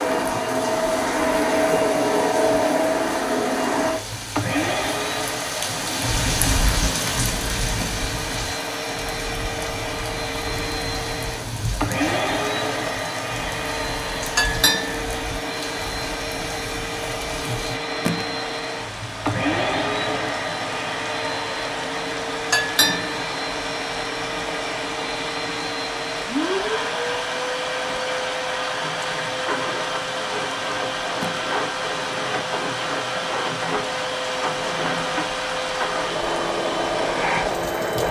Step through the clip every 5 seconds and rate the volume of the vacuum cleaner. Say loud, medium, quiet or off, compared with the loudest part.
loud, medium, medium, medium, medium, medium, medium, loud.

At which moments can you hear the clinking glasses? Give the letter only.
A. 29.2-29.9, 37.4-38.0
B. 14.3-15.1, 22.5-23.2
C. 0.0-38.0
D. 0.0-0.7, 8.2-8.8
B.